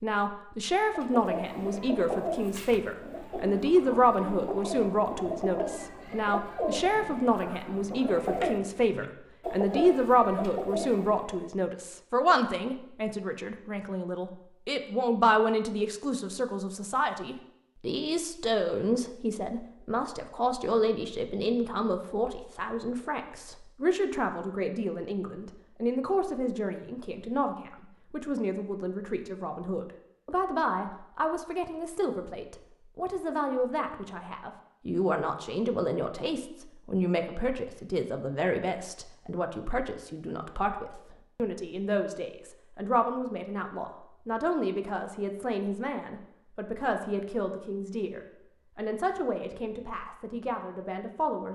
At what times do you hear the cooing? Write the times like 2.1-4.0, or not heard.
0.8-11.5.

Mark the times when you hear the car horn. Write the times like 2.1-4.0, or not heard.
not heard.